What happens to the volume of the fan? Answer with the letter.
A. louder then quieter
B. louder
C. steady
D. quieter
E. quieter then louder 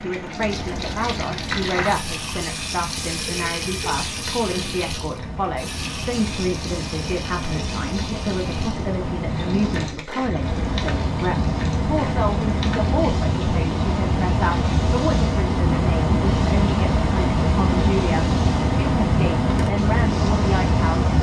B.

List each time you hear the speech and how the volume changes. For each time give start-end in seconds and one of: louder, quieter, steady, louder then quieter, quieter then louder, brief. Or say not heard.
0.0-21.1 steady.